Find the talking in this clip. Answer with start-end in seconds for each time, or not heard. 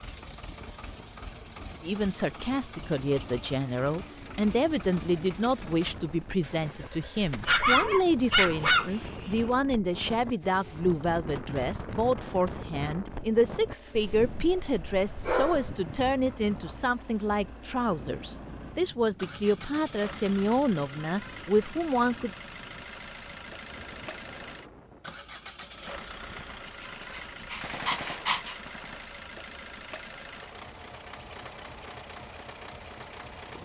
1.8-22.3.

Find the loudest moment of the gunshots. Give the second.
28 s.